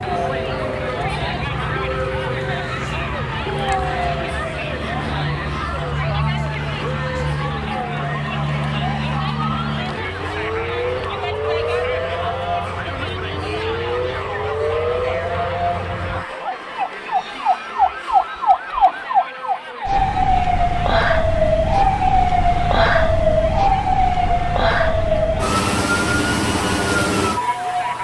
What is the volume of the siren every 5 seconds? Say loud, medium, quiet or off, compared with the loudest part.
medium, medium, medium, loud, loud, loud.